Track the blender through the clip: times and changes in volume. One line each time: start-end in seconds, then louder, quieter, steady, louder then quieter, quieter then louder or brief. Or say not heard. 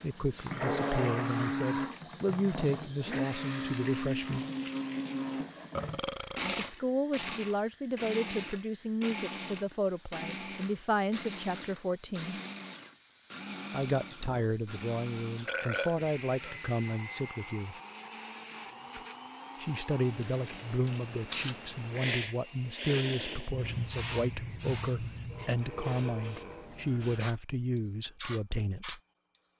0.0-25.5 quieter.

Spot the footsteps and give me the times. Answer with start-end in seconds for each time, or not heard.
not heard.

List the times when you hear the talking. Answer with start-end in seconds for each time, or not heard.
0.0-4.5, 6.5-12.3, 13.7-17.8, 19.6-29.0.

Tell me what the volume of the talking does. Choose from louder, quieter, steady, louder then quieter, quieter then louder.
steady.